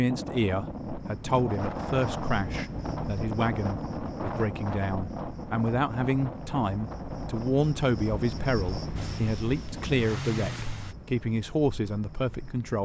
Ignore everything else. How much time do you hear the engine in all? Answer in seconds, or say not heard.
2 s.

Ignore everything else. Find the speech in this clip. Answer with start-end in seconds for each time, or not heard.
0.0-12.8.